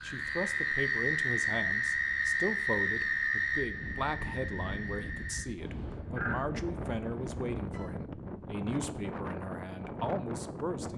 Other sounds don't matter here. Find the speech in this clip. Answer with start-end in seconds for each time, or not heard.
0.0-10.9.